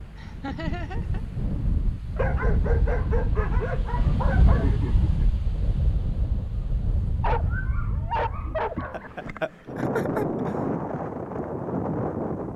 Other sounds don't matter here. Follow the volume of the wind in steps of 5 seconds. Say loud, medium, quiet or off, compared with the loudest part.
loud, medium, loud.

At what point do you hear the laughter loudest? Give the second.
10 s.